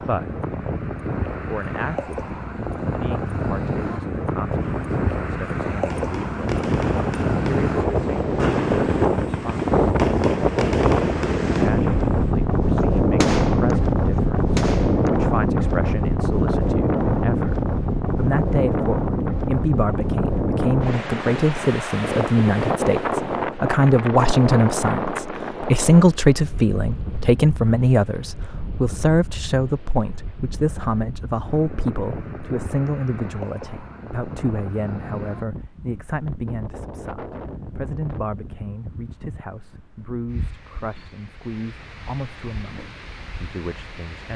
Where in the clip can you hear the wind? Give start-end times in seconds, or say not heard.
0.0-44.3.